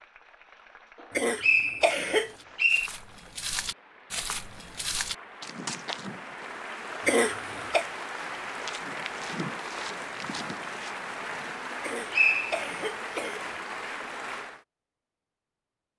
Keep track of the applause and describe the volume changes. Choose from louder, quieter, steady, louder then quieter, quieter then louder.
louder.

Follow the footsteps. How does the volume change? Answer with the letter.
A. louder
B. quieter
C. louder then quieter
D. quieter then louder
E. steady
B.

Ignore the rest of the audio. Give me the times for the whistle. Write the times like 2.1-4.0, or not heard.
1.4-2.9, 11.7-12.9.